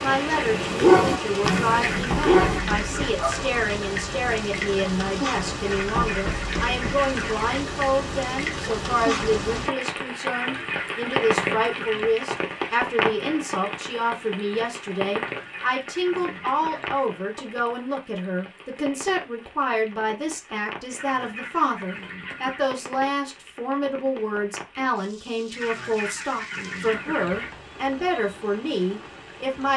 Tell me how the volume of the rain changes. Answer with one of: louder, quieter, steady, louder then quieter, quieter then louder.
quieter.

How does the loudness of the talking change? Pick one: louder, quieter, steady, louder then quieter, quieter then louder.
steady.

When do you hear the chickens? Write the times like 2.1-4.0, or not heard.
1.4-3.2, 5.6-7.5, 10.2-12.2, 15.2-17.1, 20.9-22.7, 25.5-27.5.